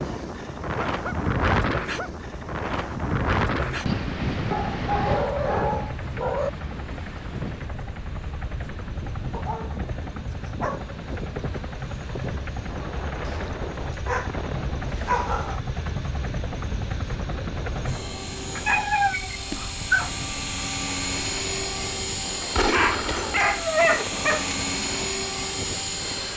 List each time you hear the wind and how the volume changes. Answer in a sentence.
You can hear the wind from 0.0 to 26.3 s, getting quieter.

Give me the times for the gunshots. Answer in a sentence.
You can hear the gunshots from 22.6 to 23.6 s.